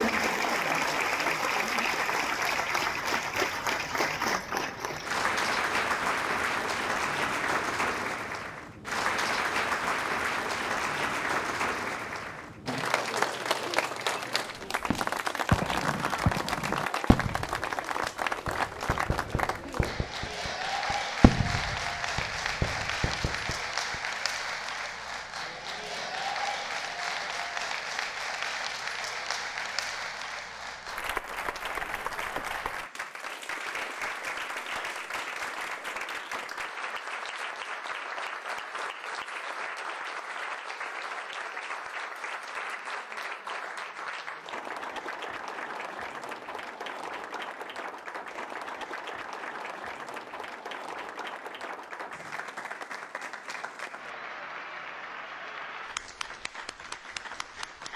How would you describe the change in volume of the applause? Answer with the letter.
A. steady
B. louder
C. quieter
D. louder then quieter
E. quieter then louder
C.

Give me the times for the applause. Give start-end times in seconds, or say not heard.
0.0-57.9.